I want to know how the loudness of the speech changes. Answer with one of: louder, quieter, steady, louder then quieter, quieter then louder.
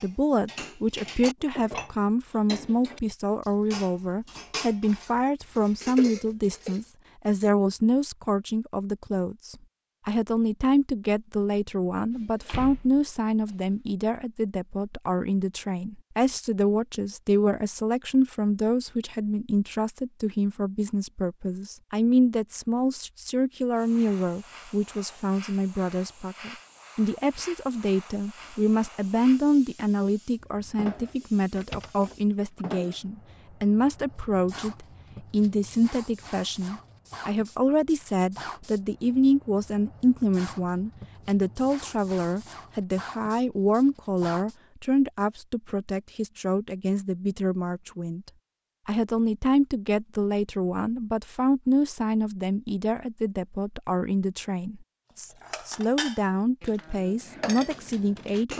steady.